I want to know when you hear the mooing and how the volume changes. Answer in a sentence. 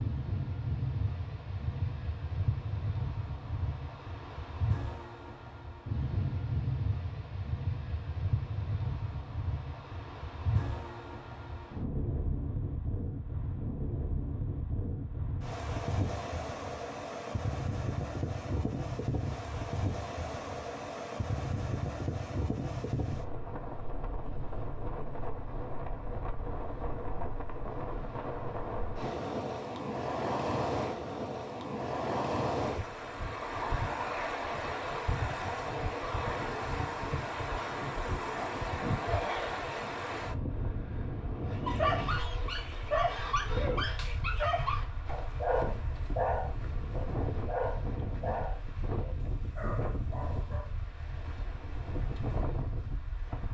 You can't hear the mooing here.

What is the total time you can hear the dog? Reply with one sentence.
The dog can be heard for 9 seconds in total.